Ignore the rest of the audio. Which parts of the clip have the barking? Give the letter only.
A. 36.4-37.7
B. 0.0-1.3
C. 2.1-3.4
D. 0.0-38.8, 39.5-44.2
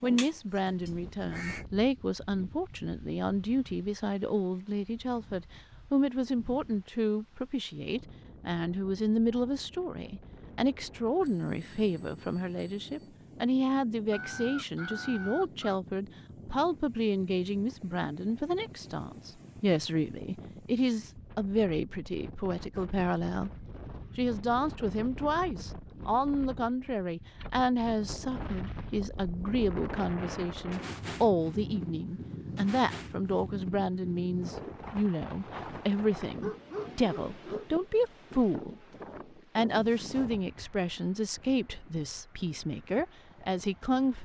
A.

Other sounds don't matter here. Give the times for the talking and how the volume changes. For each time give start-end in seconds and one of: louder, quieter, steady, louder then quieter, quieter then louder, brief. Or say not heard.
0.0-38.8 steady
39.5-44.2 steady.